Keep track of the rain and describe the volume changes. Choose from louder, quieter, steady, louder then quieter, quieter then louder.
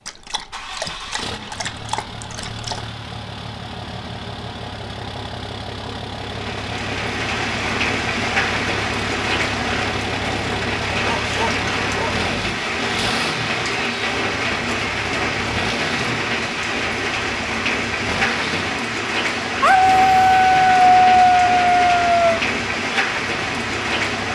steady.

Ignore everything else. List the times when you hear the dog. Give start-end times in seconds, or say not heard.
0.1-2.9, 11.0-12.2, 19.6-22.4.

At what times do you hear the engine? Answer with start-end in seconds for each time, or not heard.
0.0-24.2.